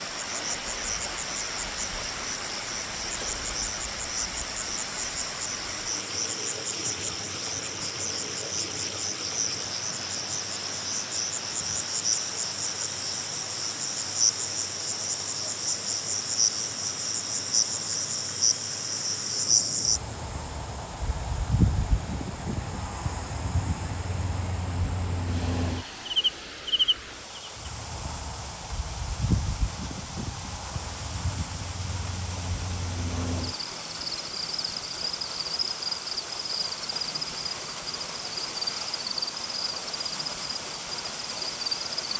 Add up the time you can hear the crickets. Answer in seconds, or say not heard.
42 s.